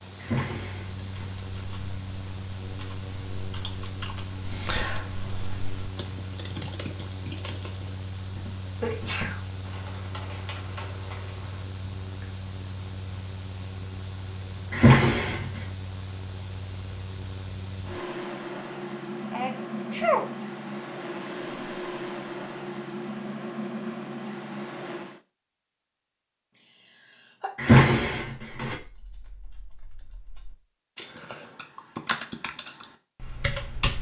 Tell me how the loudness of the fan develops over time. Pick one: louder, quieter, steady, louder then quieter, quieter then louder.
louder.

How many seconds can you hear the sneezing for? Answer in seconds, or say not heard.
2 s.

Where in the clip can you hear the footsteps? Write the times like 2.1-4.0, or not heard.
not heard.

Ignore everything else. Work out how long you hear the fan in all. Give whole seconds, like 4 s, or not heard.
25 s.